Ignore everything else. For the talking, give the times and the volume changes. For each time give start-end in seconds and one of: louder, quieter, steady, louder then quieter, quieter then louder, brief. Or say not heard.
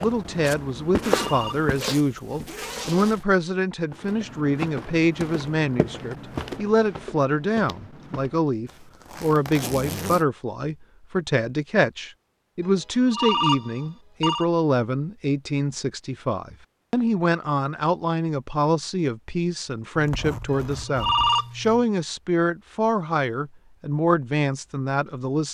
0.0-25.4 steady.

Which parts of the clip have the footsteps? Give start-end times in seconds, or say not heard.
0.0-1.9, 3.9-8.4.